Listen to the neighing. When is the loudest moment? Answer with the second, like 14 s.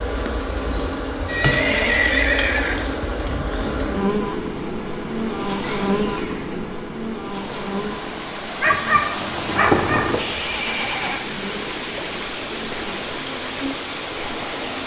2 s.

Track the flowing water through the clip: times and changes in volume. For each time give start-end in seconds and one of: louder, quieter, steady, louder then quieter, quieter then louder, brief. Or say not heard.
7.2-14.8 steady.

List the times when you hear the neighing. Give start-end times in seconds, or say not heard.
1.2-2.9, 5.5-6.8, 10.2-11.2.